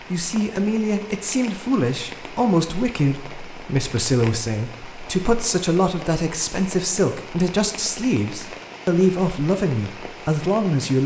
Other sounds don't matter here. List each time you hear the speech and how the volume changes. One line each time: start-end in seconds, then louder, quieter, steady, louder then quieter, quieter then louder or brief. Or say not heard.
0.1-11.0 steady.